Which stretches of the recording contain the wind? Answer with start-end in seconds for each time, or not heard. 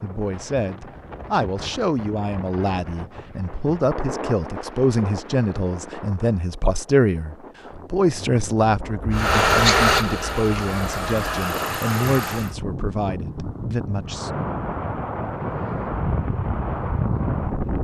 0.0-17.7.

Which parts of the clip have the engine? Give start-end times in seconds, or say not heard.
9.1-12.6.